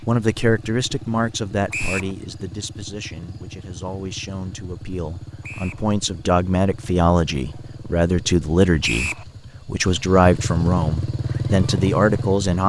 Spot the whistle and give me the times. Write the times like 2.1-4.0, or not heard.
1.7-2.1, 5.4-5.8, 8.8-9.2.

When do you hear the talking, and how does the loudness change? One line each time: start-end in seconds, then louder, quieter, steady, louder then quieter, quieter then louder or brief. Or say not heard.
0.0-12.6 quieter then louder.